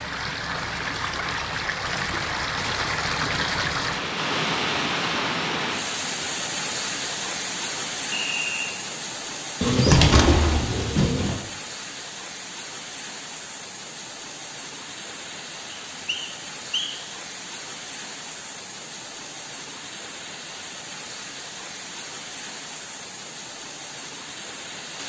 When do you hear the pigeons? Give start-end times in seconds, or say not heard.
9.6-11.4.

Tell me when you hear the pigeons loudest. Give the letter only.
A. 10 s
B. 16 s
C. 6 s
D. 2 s
A.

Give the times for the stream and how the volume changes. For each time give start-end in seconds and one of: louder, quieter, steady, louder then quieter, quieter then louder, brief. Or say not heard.
0.0-25.0 quieter.